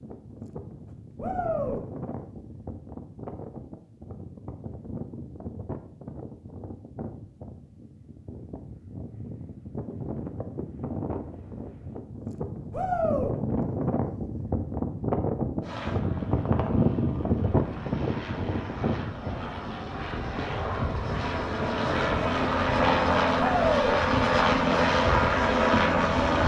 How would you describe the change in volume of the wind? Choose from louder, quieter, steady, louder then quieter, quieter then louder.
louder then quieter.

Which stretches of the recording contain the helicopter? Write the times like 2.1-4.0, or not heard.
15.6-26.4.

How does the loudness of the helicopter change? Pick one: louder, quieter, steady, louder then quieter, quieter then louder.
louder.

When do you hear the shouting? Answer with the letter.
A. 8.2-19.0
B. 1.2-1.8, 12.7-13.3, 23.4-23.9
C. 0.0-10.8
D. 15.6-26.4
B.